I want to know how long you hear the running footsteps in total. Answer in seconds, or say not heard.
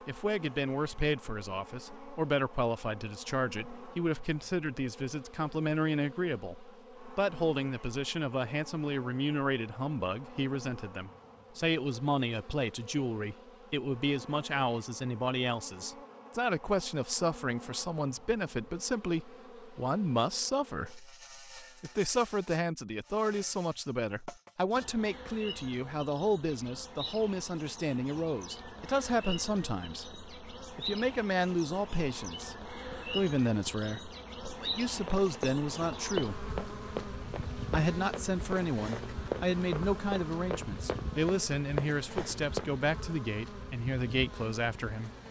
8 s.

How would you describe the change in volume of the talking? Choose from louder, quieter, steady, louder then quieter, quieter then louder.
steady.